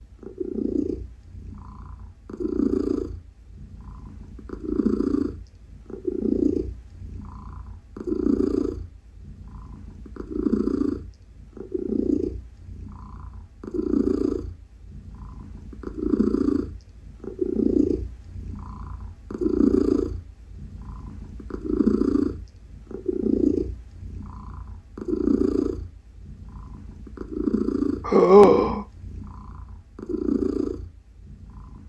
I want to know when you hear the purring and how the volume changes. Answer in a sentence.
The purring can be heard from 0.0 to 31.8 s, at a steady volume.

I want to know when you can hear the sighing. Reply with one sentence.
You can hear the sighing from 28.1 to 28.9 s.